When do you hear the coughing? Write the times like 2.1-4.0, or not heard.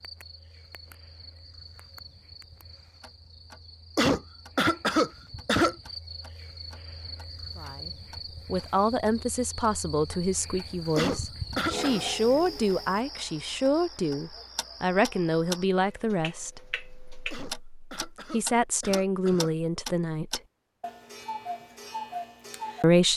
4.0-5.8, 10.9-12.0, 17.3-19.6.